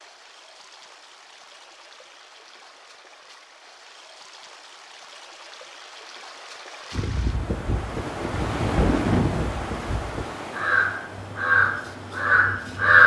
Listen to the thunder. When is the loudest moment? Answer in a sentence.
The volume of the thunder peaks at 9 seconds.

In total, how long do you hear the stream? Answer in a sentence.
The stream can be heard for 13 seconds in total.